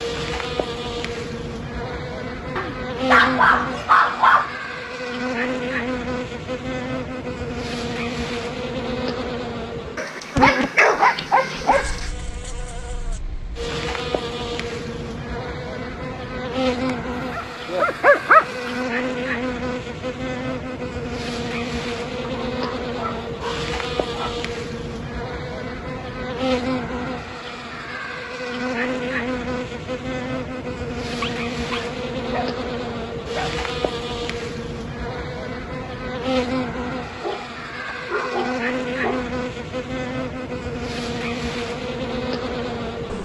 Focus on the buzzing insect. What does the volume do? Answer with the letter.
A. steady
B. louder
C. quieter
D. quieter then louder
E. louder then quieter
A.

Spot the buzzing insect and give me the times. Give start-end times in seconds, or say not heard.
0.0-43.2.